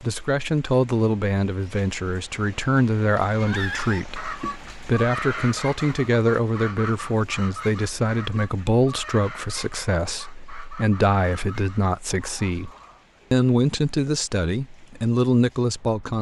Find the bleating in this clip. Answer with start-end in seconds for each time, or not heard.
not heard.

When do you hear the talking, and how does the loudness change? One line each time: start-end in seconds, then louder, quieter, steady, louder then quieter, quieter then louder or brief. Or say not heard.
0.0-12.7 steady
13.3-16.1 brief.